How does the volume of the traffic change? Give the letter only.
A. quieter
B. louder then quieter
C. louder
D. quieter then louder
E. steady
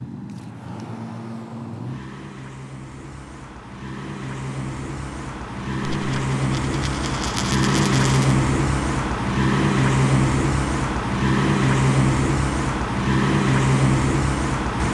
C.